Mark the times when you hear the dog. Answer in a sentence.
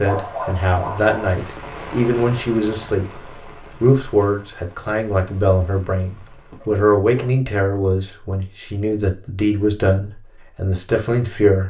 You can hear the dog from 0.0 to 1.2 s and from 6.5 to 7.3 s.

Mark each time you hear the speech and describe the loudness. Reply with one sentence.
You can hear the speech from 0.0 to 11.6 s, at a steady volume.